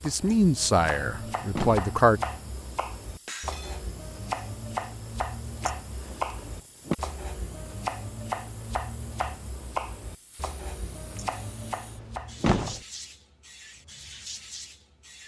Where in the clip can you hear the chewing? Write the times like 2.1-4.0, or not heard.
not heard.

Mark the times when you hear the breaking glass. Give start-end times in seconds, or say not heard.
3.2-3.9.